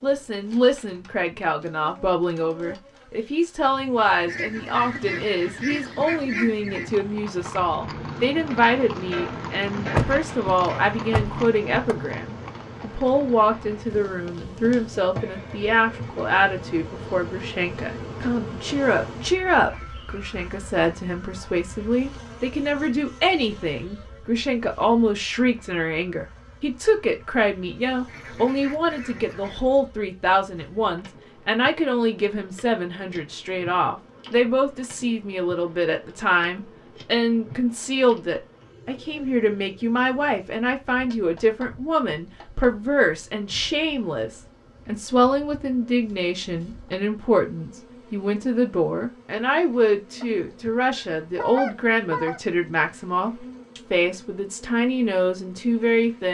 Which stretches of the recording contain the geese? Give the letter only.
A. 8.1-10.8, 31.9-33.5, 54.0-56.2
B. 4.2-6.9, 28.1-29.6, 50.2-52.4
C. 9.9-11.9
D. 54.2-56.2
B.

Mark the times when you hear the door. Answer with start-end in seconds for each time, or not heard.
9.9-11.9.